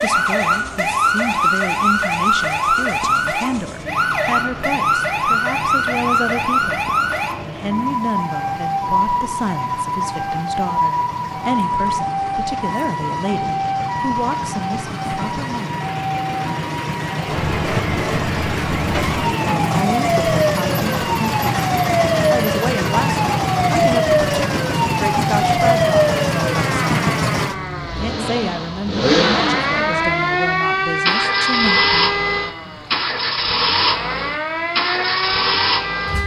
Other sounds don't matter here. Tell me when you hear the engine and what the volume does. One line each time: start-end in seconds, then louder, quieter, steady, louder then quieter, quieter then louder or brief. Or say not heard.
0.0-36.2 louder.